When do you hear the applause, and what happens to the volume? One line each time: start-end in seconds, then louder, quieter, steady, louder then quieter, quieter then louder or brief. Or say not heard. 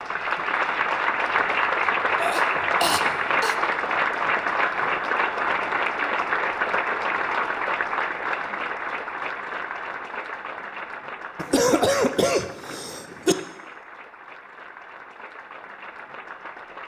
0.0-16.8 quieter.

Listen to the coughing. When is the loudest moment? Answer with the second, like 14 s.
12 s.